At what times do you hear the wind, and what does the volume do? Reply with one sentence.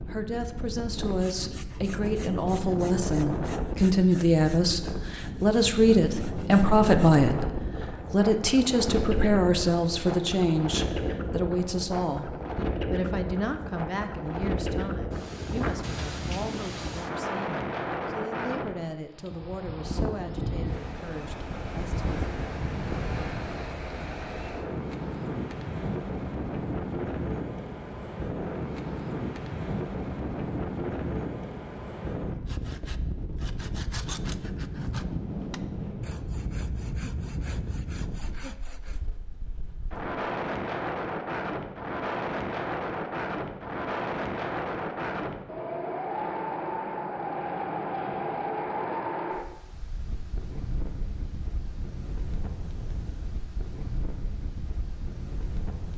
You can hear the wind from 0.0 to 55.9 s, at a steady volume.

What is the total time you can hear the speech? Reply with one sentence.
The speech can be heard for 22 seconds in total.